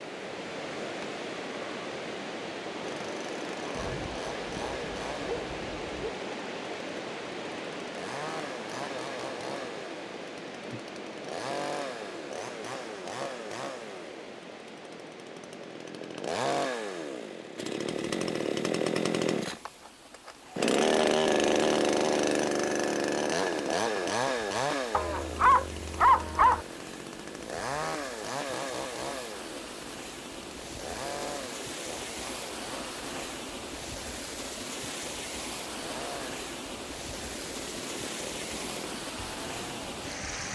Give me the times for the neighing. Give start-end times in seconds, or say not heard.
not heard.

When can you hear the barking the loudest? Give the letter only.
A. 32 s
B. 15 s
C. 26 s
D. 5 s
C.